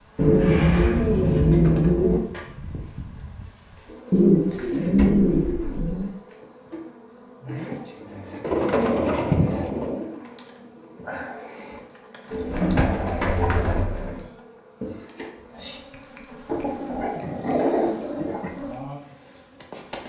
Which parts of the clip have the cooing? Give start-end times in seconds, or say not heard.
0.1-2.2, 4.1-6.1, 8.4-10.1, 12.3-14.2, 16.4-18.5.